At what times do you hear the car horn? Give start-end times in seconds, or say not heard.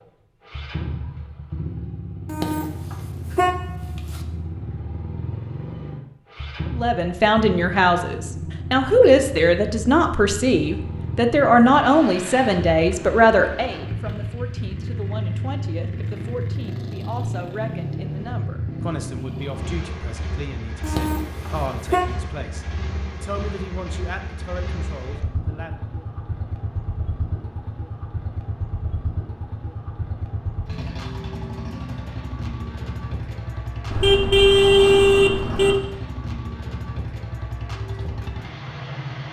2.2-4.2, 20.8-22.1, 33.9-35.8.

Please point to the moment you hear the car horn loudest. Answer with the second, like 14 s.
35 s.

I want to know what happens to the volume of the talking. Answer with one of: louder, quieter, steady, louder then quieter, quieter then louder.
quieter.